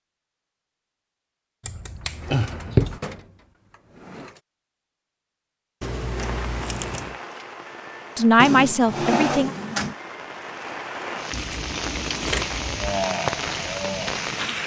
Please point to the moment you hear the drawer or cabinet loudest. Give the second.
9 s.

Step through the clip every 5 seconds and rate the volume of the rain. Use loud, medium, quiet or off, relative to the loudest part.
off, medium, loud.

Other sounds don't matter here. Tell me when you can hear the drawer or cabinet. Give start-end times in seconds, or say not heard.
2.0-4.4, 8.3-9.9.